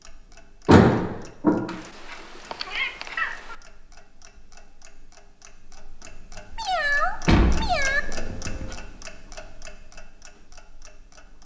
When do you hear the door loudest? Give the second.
1 s.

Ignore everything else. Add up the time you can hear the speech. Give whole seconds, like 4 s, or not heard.
not heard.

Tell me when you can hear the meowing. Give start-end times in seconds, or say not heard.
1.6-3.5, 6.5-8.0.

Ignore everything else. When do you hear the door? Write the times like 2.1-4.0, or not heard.
0.7-1.6, 7.2-8.8.